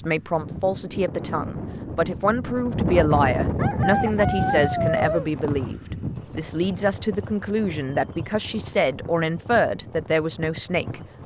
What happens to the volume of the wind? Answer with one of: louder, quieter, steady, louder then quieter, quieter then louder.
louder then quieter.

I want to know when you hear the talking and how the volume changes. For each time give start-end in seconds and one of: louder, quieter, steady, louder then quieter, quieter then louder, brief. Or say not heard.
0.0-11.0 steady.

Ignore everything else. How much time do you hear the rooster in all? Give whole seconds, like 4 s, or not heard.
2 s.